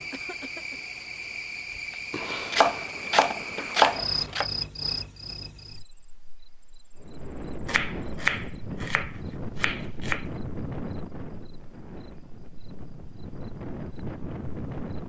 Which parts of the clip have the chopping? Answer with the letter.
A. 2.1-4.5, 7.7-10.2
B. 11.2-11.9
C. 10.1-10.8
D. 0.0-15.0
A.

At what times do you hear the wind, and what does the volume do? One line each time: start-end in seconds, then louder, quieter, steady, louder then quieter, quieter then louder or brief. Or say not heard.
7.0-15.0 quieter then louder.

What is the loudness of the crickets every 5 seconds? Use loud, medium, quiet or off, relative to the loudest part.
loud, quiet, quiet.